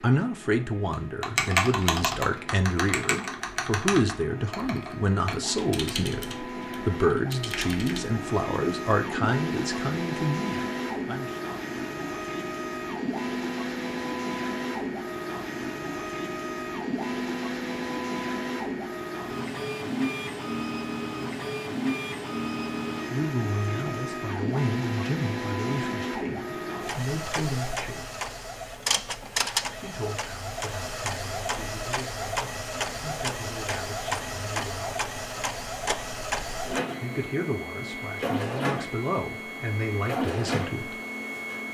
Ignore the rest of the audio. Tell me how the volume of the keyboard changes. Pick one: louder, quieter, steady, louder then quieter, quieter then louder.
quieter.